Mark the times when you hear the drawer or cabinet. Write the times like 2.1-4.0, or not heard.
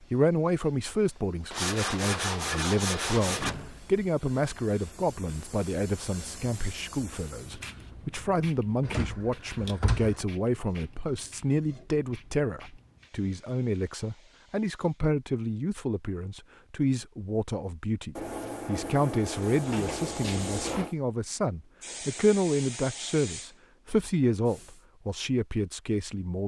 3.2-4.0, 8.8-10.2, 19.6-20.9.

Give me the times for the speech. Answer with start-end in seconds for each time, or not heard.
0.0-26.4.